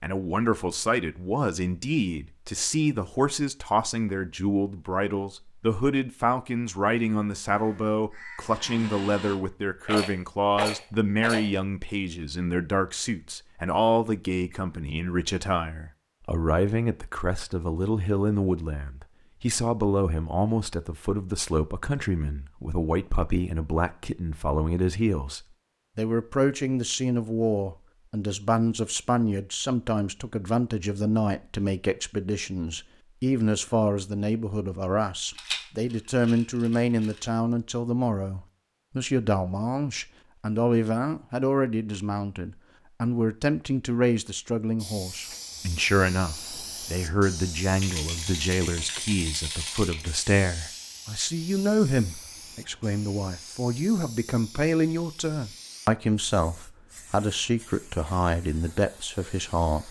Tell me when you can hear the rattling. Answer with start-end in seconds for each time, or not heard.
9.8-11.5, 35.4-37.2, 47.8-50.1.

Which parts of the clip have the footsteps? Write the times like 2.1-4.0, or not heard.
not heard.